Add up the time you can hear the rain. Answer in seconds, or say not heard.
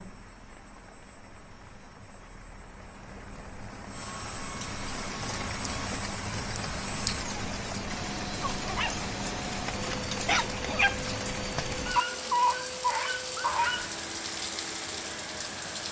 16 s.